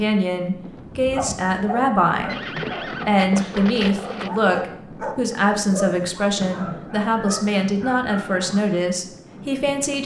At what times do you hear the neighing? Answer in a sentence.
You can hear the neighing from 2.2 to 4.3 s.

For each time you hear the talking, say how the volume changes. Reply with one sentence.
The talking can be heard briefly from 0.0 to 2.4 s; and from 3.0 to 10.0 s, at a steady volume.